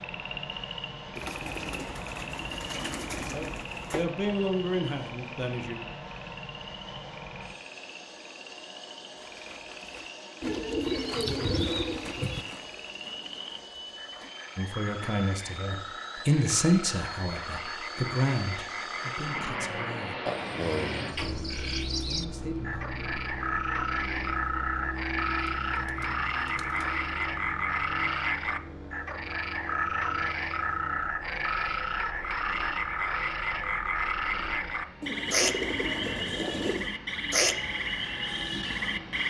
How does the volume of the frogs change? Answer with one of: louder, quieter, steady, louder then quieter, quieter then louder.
louder.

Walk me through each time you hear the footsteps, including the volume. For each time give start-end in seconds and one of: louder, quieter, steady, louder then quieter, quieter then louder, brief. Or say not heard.
not heard.